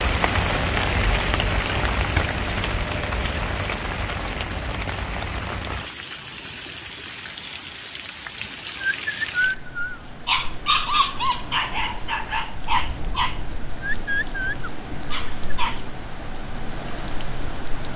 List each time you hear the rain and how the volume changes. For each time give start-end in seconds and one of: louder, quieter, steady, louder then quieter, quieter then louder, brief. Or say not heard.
0.0-17.9 quieter.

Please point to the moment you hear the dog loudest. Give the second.
11 s.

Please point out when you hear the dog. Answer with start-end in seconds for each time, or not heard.
8.8-15.8.